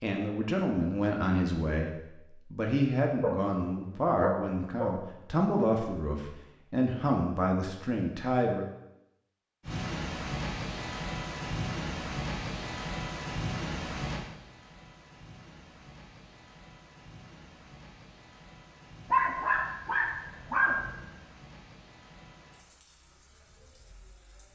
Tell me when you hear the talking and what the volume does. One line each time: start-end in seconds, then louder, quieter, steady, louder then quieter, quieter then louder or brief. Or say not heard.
0.0-8.7 steady.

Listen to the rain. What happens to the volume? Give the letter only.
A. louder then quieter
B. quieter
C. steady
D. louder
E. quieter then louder
B.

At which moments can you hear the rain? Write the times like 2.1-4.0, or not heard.
9.7-24.5.